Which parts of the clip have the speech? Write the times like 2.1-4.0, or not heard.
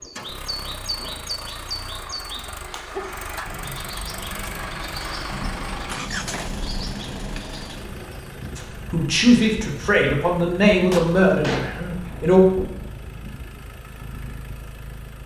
8.6-12.4.